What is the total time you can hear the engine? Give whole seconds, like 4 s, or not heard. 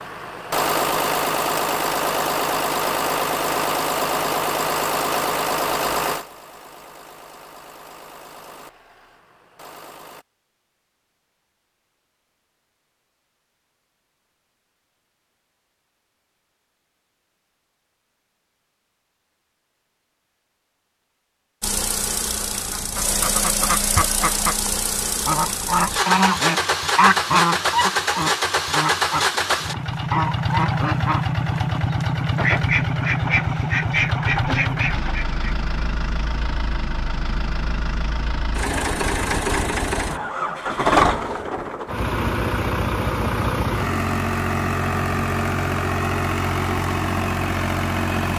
37 s.